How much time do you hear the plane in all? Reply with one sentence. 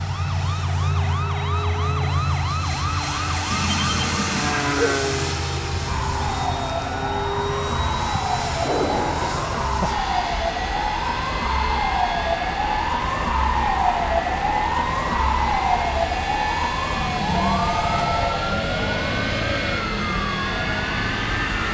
The plane can be heard for 22 seconds in total.